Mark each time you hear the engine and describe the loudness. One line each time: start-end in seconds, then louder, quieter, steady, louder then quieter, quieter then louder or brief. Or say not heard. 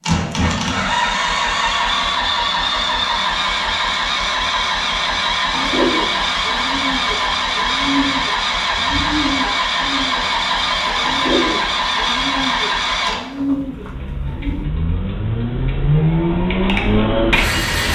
0.0-17.8 steady.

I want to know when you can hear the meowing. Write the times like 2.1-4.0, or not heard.
not heard.